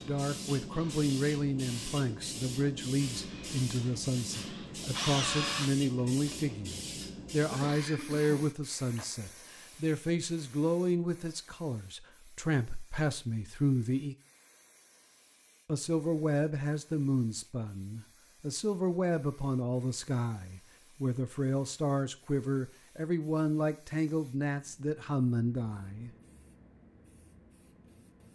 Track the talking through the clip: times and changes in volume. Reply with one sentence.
You can hear the talking from 0.1 to 14.2 s, at a steady volume; and from 15.7 to 26.1 s, at a steady volume.